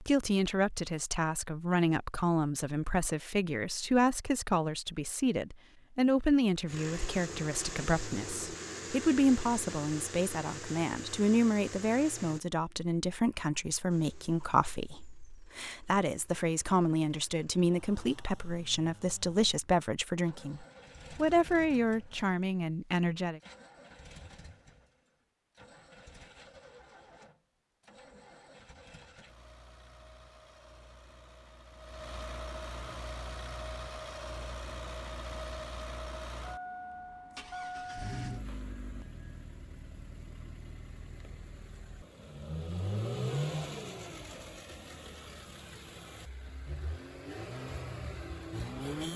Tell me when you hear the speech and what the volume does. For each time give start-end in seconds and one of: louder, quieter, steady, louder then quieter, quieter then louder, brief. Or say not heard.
0.0-23.4 steady.